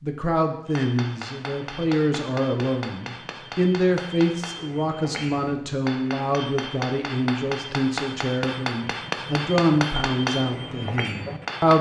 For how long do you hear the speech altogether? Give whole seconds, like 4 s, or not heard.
12 s.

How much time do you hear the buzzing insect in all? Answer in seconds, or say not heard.
not heard.